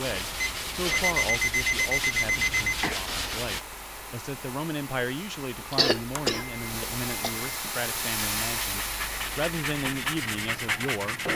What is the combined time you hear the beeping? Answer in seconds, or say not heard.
4 s.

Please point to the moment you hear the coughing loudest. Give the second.
6 s.